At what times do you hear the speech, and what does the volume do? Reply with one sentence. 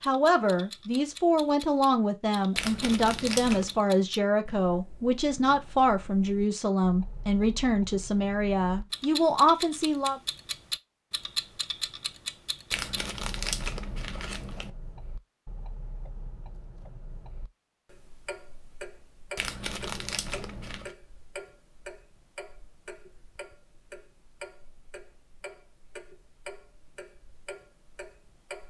You can hear the speech from 0.0 to 10.2 s, at a steady volume.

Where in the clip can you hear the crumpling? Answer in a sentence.
You can hear the crumpling from 2.5 to 3.8 s, from 12.7 to 14.7 s and from 19.4 to 20.9 s.